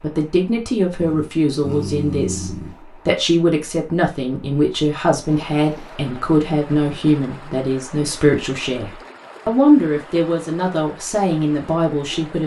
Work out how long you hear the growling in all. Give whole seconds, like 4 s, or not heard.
2 s.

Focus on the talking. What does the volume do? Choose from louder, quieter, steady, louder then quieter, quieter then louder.
steady.